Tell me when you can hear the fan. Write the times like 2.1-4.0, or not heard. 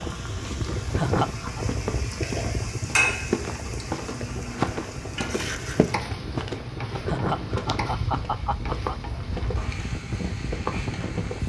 0.0-11.4.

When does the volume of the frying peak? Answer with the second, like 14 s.
3 s.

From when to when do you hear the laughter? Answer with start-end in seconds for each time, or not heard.
0.9-1.6, 7.0-8.9.